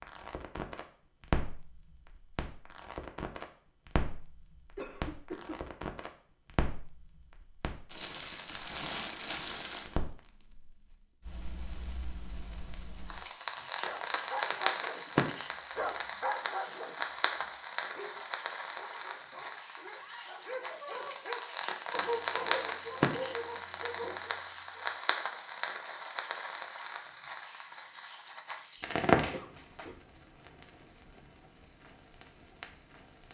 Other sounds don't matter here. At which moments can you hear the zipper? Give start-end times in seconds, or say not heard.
not heard.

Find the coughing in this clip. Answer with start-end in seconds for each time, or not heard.
4.8-5.6, 29.1-29.9.